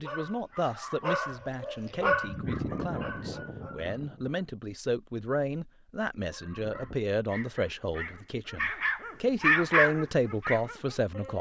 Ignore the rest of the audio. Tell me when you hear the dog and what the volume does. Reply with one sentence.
The dog can be heard from 0.0 to 4.4 s, getting louder then quieter; and from 6.2 to 11.3 s, getting louder then quieter.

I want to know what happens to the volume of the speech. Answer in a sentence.
The loudness of the speech goes up.